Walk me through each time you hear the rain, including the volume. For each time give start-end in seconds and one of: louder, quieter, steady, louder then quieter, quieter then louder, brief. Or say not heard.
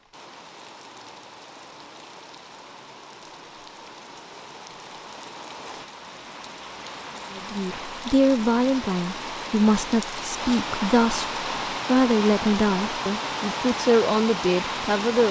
0.0-15.2 louder.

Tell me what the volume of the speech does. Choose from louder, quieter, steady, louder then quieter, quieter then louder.
steady.